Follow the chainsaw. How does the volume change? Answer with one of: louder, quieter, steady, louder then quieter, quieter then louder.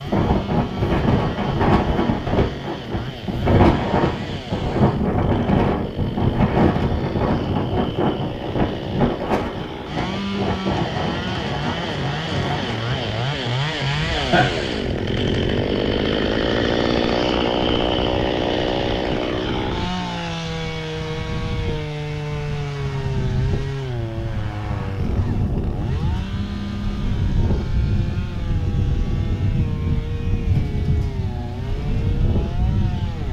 louder then quieter.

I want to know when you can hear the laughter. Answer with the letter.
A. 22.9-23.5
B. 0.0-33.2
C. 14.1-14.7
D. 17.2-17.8
C.